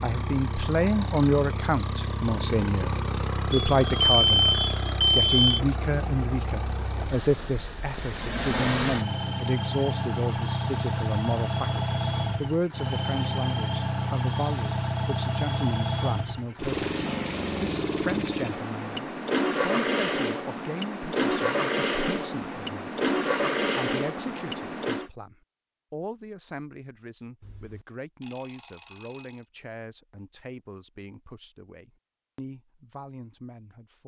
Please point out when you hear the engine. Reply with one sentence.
The engine can be heard from 0.0 to 25.1 s.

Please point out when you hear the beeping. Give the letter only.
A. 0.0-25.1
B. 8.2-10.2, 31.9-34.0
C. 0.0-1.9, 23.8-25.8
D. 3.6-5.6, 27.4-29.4
D.